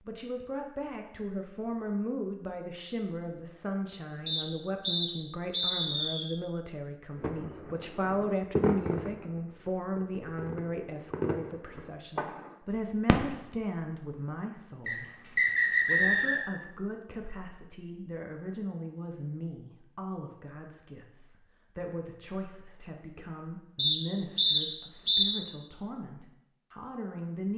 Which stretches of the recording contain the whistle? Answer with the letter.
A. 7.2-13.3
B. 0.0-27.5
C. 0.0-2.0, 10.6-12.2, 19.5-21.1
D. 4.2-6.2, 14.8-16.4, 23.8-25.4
D.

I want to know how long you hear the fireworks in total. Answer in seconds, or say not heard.
6 s.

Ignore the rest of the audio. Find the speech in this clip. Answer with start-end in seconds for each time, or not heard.
0.0-27.5.